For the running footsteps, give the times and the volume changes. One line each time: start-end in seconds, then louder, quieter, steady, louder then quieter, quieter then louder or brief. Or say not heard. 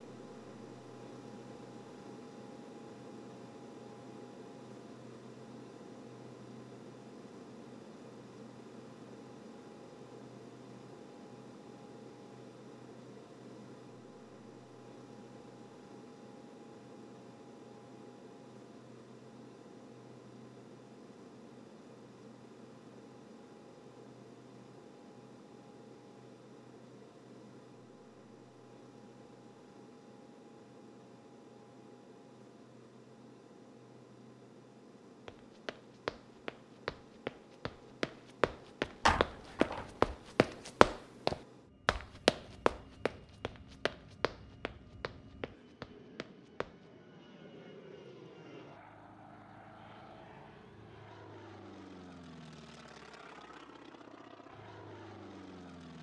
35.2-46.8 louder then quieter.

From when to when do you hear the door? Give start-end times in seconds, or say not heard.
39.0-39.9.